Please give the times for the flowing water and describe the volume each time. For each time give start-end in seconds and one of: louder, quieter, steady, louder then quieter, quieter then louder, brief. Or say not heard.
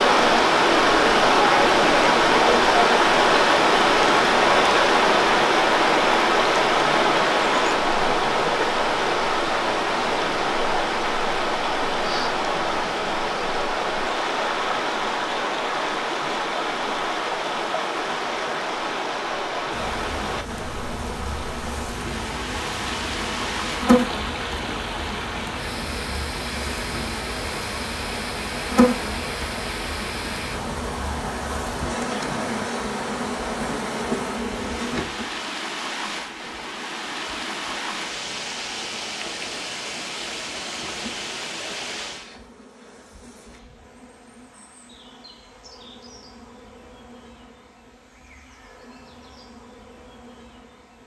0.0-42.3 quieter.